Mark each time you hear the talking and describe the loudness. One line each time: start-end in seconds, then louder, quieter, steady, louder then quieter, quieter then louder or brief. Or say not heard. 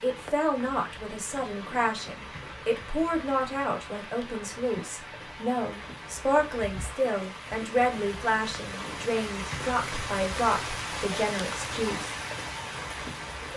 0.0-12.2 steady.